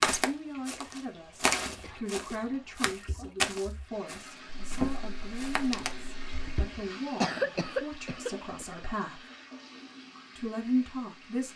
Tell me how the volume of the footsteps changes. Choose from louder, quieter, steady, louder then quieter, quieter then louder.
louder then quieter.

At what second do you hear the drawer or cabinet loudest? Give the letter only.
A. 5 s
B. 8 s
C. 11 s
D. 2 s
A.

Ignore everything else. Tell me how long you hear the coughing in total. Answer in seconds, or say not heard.
3 s.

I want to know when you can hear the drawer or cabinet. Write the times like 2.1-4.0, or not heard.
4.6-6.7.